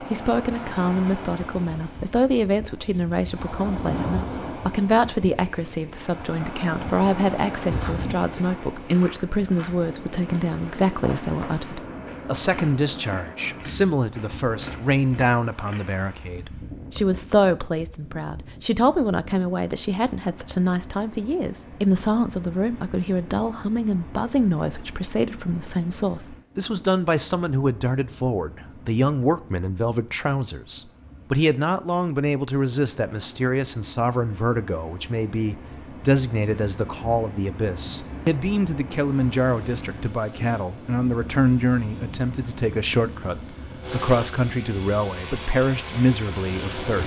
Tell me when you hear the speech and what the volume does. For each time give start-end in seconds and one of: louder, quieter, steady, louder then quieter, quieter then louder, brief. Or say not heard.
0.0-47.0 steady.